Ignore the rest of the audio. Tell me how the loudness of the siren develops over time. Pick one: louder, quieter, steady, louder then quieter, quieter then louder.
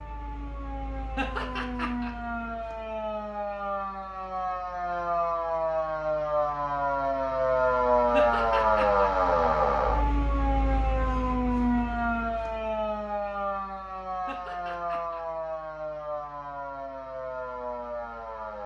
louder then quieter.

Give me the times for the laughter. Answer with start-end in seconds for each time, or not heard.
1.1-2.1, 8.1-9.1, 14.2-15.2.